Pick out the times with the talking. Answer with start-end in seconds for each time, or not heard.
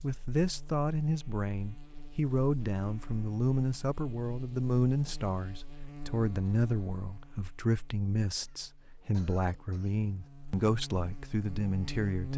0.0-12.3.